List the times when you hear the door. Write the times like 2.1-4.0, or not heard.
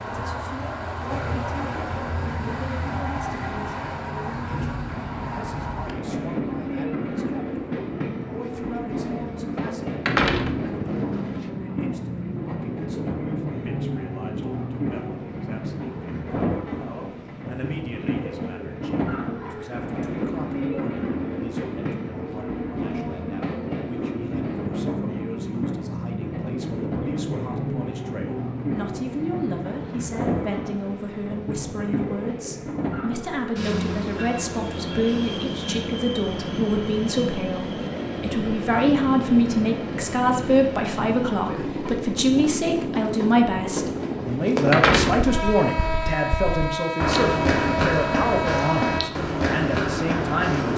10.1-11.4, 44.7-46.1.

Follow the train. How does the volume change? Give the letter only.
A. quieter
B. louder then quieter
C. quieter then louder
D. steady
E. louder
D.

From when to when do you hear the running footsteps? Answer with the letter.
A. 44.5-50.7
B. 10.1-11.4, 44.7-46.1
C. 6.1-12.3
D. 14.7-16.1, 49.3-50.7
A.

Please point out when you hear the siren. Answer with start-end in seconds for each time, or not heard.
not heard.